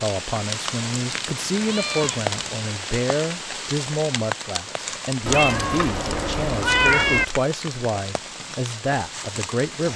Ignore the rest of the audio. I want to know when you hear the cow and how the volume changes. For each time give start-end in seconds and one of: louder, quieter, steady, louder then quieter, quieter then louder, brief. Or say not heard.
not heard.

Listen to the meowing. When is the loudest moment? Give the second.
7 s.